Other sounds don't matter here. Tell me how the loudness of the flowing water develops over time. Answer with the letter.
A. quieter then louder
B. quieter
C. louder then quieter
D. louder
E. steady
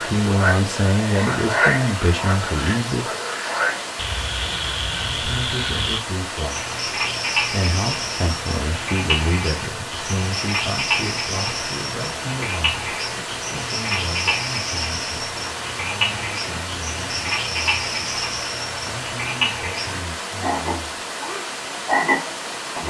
E.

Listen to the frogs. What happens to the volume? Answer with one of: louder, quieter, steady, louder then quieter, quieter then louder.
steady.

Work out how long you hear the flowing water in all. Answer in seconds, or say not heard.
23 s.